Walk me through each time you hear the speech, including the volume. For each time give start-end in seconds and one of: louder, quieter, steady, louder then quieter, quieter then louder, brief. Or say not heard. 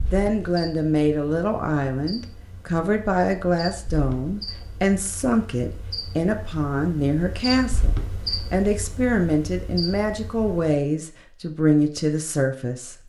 0.1-13.0 steady.